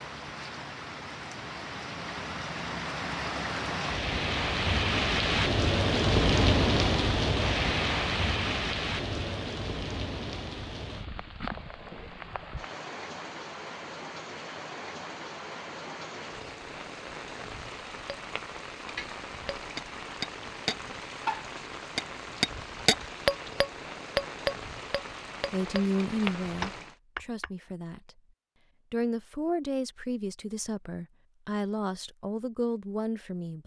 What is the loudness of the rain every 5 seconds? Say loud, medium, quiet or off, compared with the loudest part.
medium, loud, quiet, quiet, quiet, quiet, off.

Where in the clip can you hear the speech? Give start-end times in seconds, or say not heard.
25.5-28.2, 28.9-33.6.